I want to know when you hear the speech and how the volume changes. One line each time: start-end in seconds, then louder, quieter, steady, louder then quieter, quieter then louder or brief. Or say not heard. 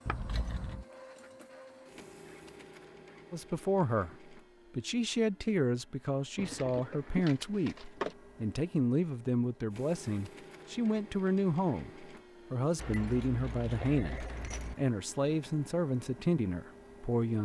3.3-17.3 steady.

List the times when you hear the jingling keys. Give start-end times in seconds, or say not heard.
0.1-0.8, 6.3-8.2, 12.8-14.8.